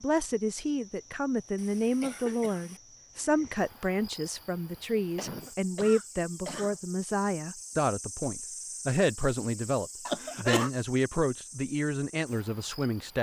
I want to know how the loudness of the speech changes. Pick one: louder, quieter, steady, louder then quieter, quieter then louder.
steady.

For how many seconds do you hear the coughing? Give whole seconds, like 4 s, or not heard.
4 s.